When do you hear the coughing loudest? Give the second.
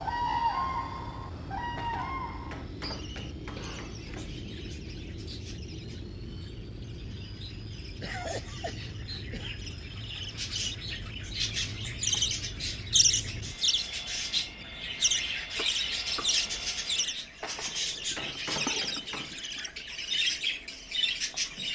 8 s.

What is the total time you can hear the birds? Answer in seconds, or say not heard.
22 s.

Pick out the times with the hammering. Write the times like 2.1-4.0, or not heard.
1.8-4.5, 17.4-19.4.